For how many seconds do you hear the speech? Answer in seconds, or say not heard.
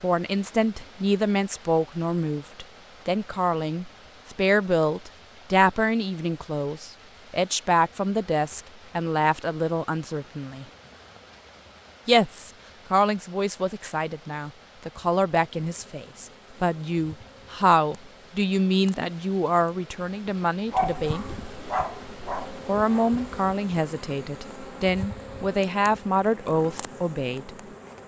25 s.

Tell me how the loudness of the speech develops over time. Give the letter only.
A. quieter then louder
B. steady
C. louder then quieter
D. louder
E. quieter
B.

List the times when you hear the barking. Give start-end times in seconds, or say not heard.
20.7-22.6.